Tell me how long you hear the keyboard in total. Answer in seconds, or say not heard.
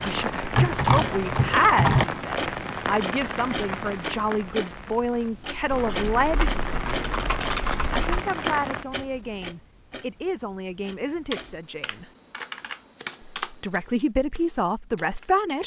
6 s.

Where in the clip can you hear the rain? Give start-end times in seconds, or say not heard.
0.0-8.8.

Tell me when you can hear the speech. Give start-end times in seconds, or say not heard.
0.0-6.5, 8.1-12.1, 13.4-15.6.